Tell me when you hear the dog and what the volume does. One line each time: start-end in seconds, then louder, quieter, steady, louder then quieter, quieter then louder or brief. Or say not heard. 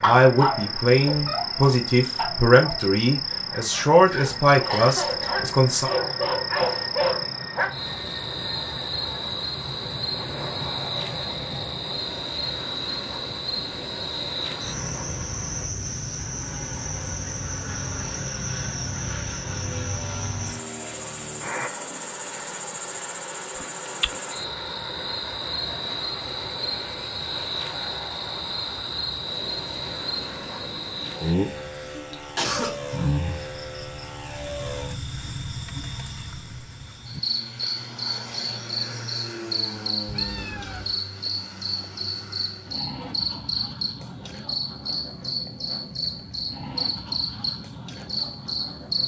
0.0-7.7 quieter then louder.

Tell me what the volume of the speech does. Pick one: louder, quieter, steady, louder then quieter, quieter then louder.
steady.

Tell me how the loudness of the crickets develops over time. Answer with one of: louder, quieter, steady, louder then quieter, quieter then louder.
steady.